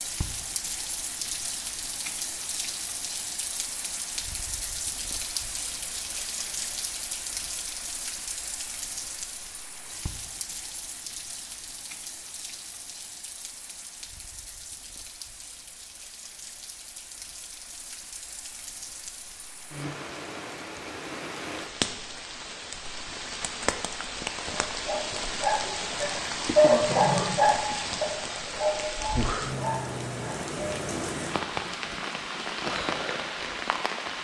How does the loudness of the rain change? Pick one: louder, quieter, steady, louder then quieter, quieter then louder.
quieter then louder.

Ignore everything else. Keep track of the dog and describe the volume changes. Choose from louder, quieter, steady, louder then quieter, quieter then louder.
louder then quieter.